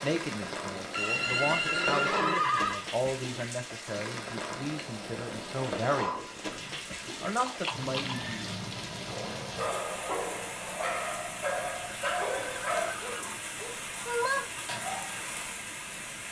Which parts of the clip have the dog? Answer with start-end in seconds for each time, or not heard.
8.9-15.2.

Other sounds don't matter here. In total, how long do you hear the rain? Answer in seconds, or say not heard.
16 s.